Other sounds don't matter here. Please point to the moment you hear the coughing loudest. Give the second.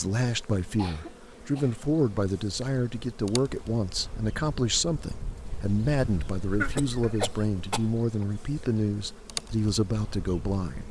7 s.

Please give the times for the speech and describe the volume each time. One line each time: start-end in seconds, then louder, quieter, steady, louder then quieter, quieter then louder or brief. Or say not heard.
0.0-10.8 steady.